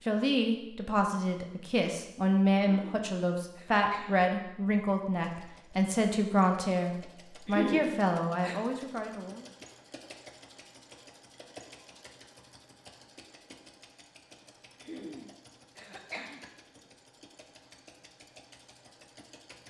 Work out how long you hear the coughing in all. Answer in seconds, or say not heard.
4 s.